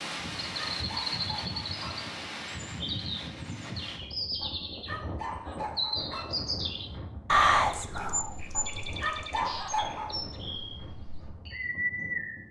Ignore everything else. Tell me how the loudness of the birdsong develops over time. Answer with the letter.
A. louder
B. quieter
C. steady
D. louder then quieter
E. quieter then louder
D.